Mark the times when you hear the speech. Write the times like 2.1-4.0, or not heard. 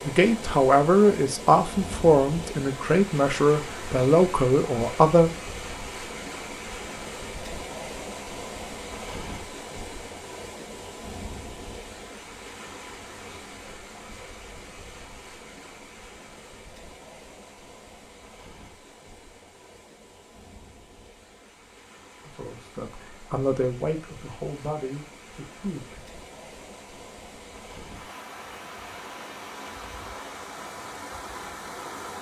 0.1-5.3, 22.2-26.0.